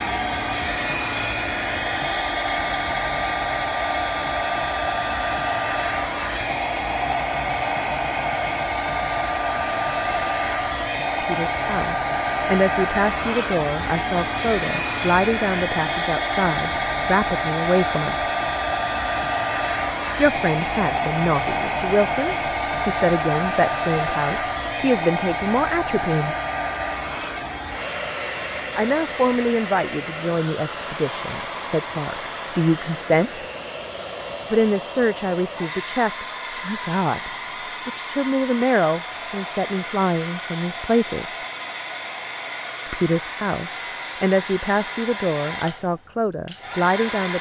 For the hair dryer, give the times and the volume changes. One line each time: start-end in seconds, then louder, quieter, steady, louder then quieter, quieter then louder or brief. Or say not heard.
0.0-47.3 quieter.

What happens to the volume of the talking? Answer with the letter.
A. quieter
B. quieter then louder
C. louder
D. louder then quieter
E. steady
E.